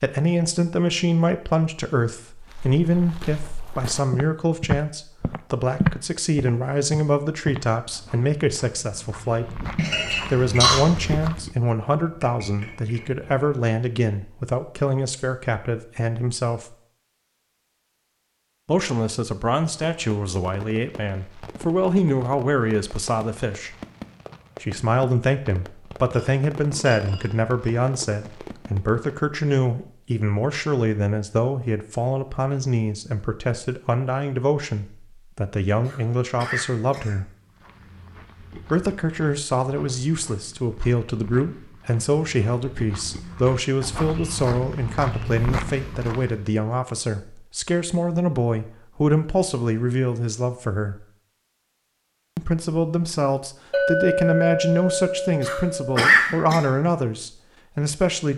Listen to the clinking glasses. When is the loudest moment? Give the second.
54 s.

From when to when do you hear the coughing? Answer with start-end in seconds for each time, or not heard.
9.8-10.8, 35.9-37.1, 55.5-56.6.